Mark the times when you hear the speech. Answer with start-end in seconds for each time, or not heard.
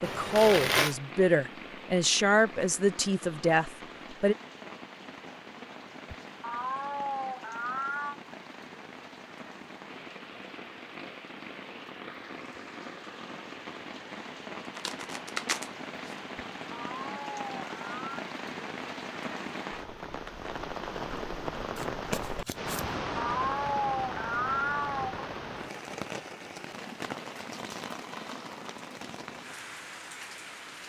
0.0-4.3.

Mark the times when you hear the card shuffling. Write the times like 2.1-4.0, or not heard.
0.0-0.9, 14.7-16.1, 21.8-22.9.